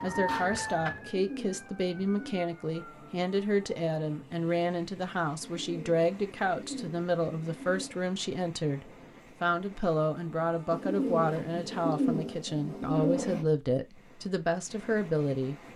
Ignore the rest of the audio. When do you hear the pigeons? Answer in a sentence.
The pigeons can be heard from 0.1 to 2.5 s, from 5.4 to 8.0 s and from 10.7 to 13.4 s.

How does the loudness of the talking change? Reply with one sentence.
The loudness of the talking stays about the same.